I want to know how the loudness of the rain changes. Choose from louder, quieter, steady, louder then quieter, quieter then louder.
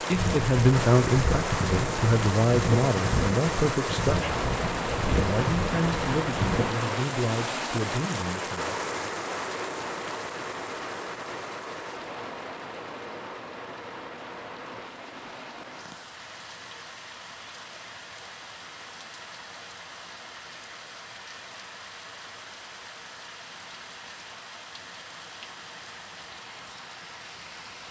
quieter.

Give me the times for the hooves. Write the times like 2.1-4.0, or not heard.
0.1-6.8.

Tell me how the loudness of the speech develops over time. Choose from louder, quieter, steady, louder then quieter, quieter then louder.
quieter.